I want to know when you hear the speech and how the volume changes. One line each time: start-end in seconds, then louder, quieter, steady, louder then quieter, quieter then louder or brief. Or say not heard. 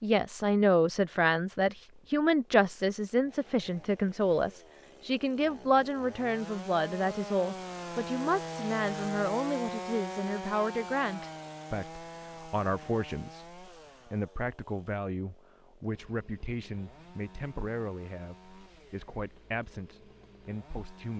0.0-21.1 quieter.